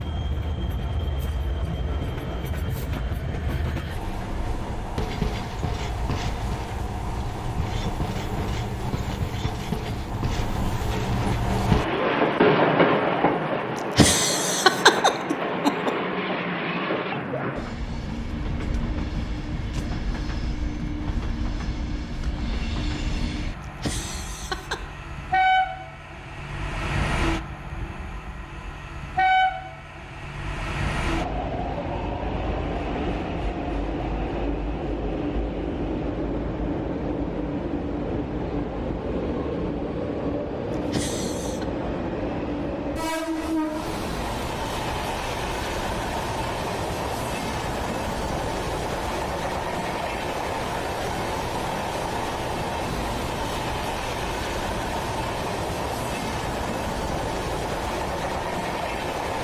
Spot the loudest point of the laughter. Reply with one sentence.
The loudest moment of the laughter is at 15 seconds.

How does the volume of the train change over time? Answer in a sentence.
The volume of the train stays about the same.